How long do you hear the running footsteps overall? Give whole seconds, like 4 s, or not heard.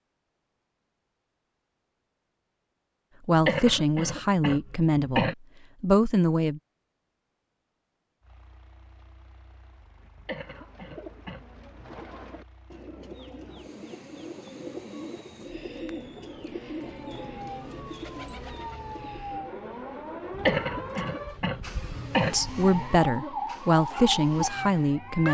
not heard.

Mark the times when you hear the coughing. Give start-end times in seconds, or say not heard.
3.4-5.3, 10.2-11.9, 20.4-22.4.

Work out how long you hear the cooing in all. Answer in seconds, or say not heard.
10 s.